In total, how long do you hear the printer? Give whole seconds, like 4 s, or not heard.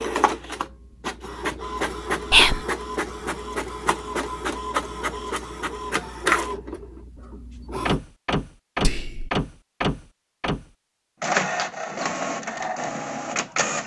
14 s.